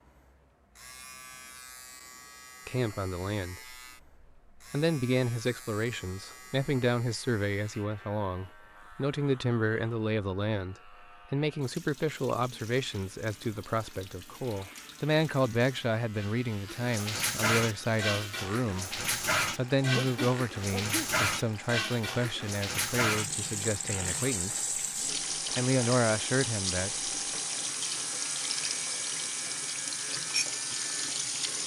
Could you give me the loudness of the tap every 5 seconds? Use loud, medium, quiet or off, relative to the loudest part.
off, off, quiet, loud, loud, loud, loud.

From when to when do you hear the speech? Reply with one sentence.
You can hear the speech from 2.6 to 3.8 s, from 4.5 to 24.6 s and from 25.6 to 27.1 s.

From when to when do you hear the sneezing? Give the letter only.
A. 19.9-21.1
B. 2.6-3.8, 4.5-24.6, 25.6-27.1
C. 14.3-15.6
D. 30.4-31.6
A.